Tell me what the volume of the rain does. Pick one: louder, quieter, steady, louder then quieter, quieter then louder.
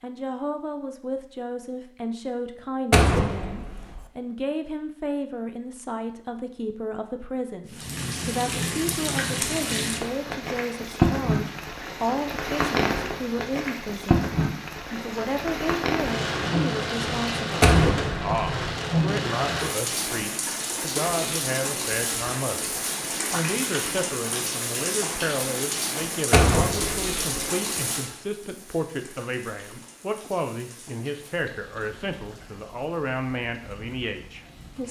quieter.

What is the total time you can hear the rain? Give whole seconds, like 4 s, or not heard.
27 s.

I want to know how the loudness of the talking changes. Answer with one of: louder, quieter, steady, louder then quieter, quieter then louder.
steady.